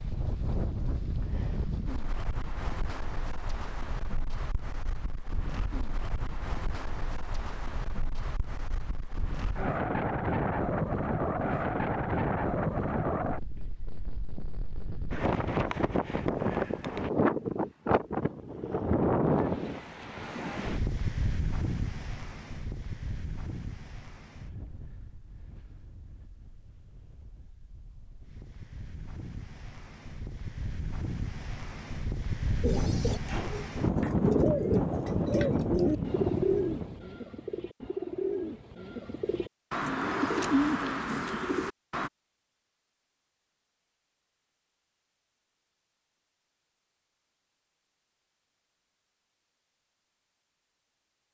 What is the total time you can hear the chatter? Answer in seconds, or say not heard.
not heard.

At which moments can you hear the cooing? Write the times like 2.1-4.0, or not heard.
32.6-42.1.